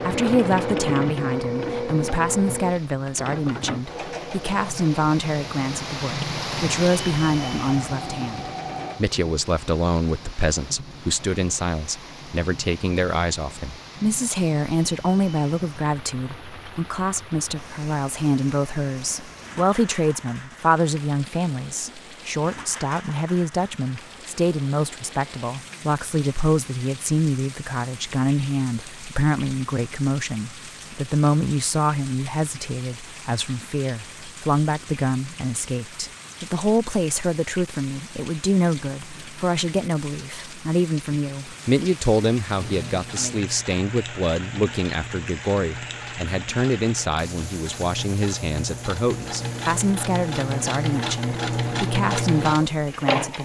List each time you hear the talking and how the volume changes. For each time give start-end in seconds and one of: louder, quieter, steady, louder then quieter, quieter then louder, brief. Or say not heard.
0.1-53.4 steady.